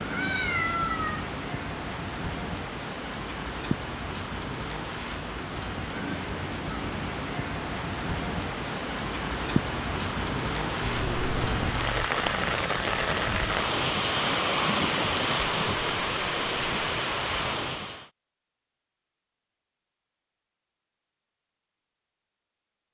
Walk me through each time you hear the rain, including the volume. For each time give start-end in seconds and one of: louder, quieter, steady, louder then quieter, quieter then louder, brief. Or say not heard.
0.0-18.1 louder.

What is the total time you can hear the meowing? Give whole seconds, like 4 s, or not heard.
4 s.